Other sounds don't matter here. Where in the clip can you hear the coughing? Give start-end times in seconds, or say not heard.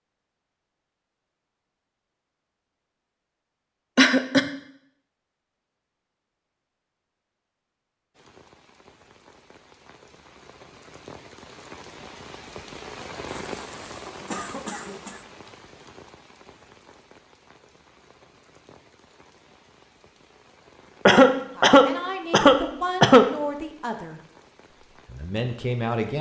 4.0-4.5, 13.4-15.2, 21.1-23.3.